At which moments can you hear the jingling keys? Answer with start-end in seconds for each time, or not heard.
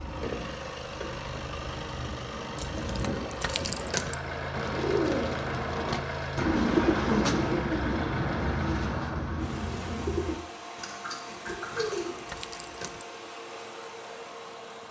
2.5-4.2, 11.7-13.1.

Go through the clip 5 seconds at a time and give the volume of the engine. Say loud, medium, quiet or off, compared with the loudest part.
loud, loud, medium.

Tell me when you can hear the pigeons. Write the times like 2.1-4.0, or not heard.
4.5-12.2.